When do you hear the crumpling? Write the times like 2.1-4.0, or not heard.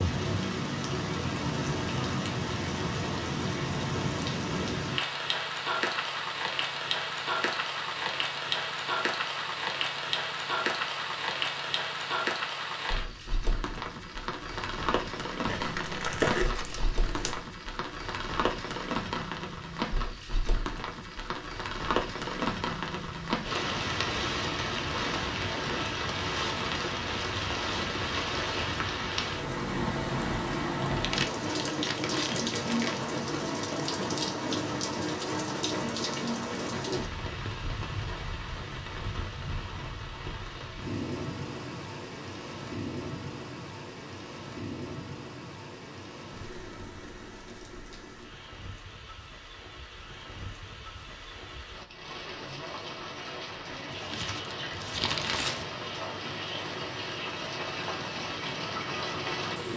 15.4-17.4, 30.9-33.0, 53.9-55.9.